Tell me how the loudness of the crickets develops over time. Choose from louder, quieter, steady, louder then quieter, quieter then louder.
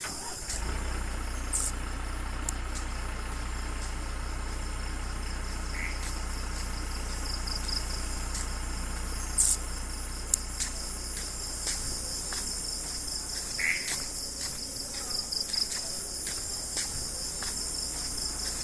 louder.